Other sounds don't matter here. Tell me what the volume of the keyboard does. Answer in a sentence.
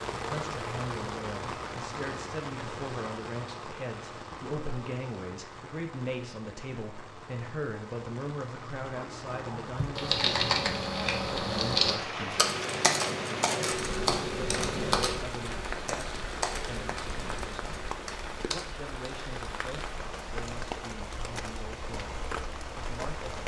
The loudness of the keyboard goes down.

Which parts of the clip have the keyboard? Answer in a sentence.
You can hear the keyboard from 9.5 to 18.9 s.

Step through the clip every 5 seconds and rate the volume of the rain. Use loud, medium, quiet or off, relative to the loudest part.
loud, medium, loud, loud, loud.